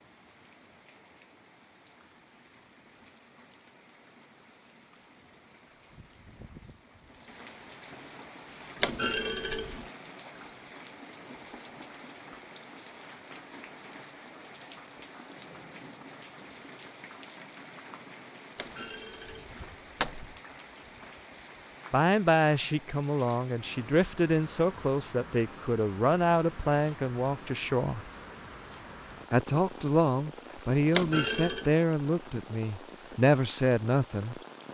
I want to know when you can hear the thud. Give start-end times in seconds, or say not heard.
8.8-9.9, 18.6-20.3, 30.9-31.7.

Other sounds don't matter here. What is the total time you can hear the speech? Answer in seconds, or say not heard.
11 s.